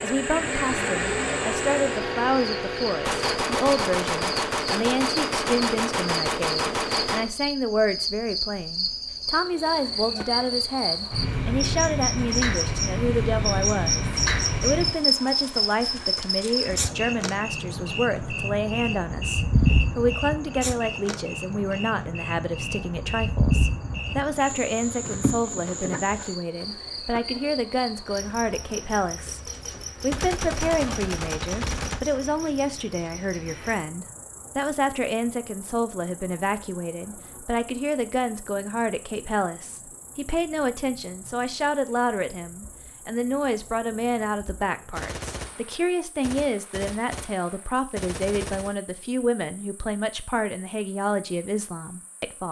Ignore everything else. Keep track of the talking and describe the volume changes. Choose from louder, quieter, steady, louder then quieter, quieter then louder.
steady.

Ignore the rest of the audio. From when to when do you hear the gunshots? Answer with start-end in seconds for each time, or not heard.
3.0-7.3, 30.1-32.0, 45.0-48.8.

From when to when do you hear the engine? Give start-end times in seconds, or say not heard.
0.0-3.4.